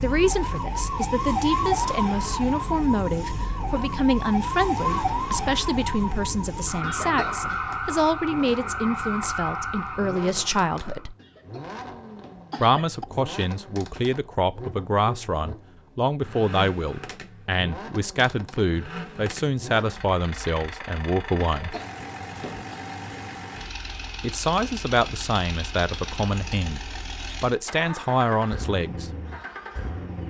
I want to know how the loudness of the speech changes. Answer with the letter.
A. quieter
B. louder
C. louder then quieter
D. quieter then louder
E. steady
E.